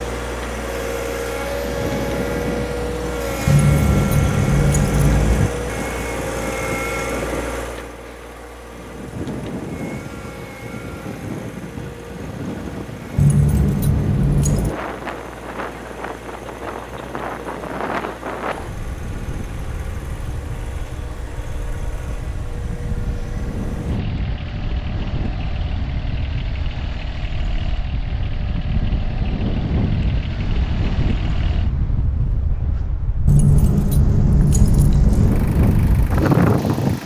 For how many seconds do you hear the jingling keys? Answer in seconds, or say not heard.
6 s.